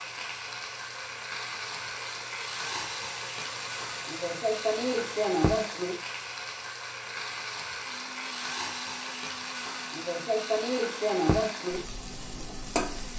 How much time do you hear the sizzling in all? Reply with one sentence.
You can hear the sizzling for 13 seconds altogether.